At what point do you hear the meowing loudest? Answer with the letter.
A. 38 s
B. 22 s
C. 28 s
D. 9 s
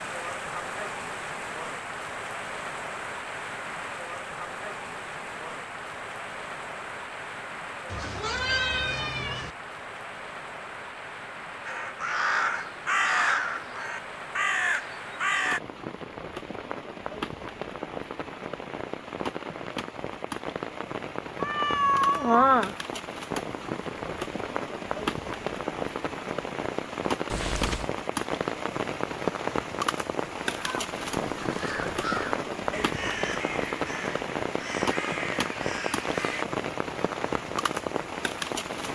B.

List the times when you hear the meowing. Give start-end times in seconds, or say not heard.
7.8-9.6, 21.4-22.8, 27.2-27.9.